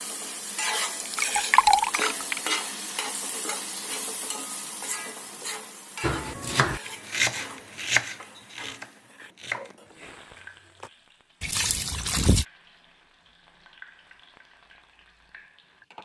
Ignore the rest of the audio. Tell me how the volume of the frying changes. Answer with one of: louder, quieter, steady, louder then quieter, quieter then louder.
quieter.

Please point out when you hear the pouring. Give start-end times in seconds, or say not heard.
1.0-2.4, 11.4-12.4.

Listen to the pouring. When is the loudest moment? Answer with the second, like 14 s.
2 s.